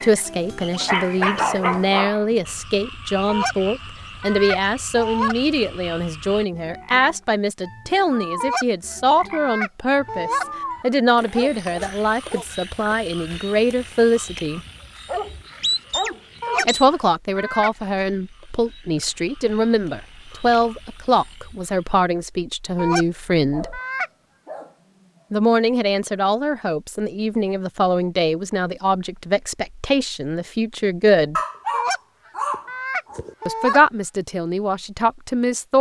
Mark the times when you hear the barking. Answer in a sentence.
The barking can be heard from 0.8 to 2.4 s, from 11.2 to 12.4 s, from 14.7 to 16.9 s, from 23.5 to 25.2 s and from 31.4 to 33.4 s.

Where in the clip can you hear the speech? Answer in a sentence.
You can hear the speech from 0.0 to 14.6 s, from 16.6 to 23.8 s, from 25.3 to 31.4 s and from 33.5 to 35.7 s.